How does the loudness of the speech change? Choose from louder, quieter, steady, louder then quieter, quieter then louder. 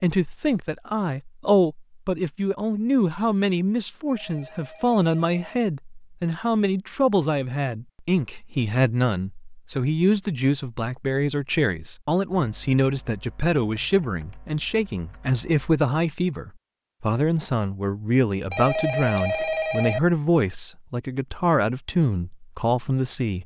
steady.